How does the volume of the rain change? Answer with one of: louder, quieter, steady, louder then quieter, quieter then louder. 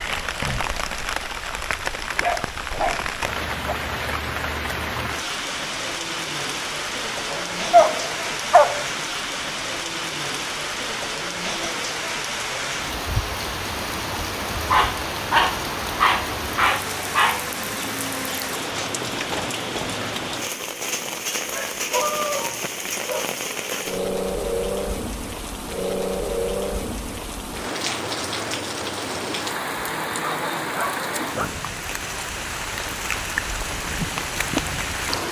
steady.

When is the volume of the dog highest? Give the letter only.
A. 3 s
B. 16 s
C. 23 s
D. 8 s
D.